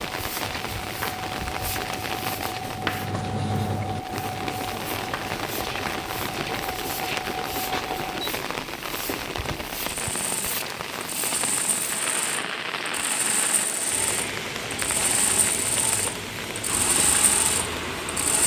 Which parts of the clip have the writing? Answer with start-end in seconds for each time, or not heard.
0.3-6.5.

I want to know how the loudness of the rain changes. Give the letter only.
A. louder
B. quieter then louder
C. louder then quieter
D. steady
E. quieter
D.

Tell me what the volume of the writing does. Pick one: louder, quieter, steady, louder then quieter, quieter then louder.
louder then quieter.